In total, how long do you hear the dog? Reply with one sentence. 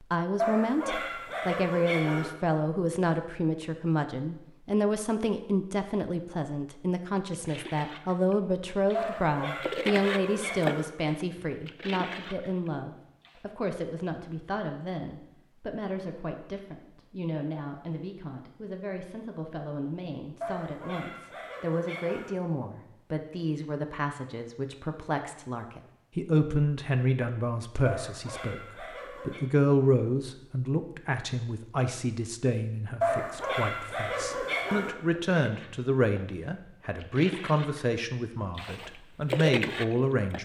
You can hear the dog for 9 seconds altogether.